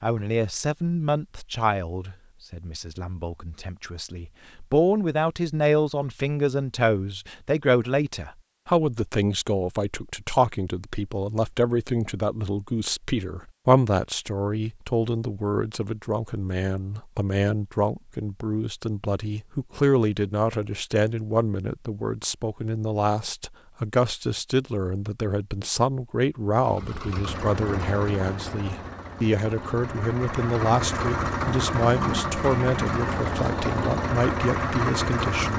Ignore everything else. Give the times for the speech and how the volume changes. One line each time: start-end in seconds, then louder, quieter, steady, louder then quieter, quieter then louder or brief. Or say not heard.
0.0-35.5 steady.